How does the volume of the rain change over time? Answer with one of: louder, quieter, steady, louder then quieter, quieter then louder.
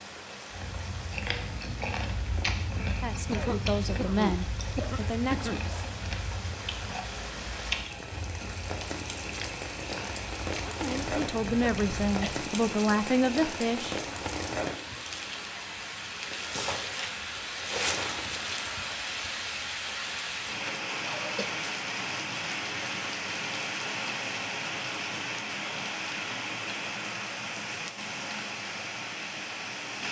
louder.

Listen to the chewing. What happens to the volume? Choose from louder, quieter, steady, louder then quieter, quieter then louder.
quieter.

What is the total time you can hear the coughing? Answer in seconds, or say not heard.
4 s.